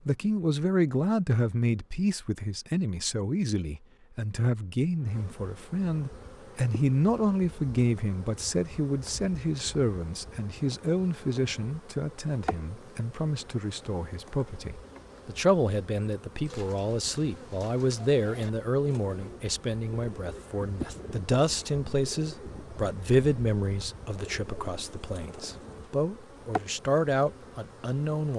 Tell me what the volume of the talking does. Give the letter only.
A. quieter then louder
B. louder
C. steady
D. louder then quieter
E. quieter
C.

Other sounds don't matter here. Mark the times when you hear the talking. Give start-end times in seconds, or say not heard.
0.1-28.3.